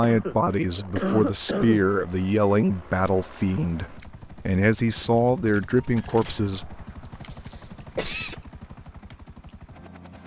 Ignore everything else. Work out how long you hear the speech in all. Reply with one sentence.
You can hear the speech for 7 seconds altogether.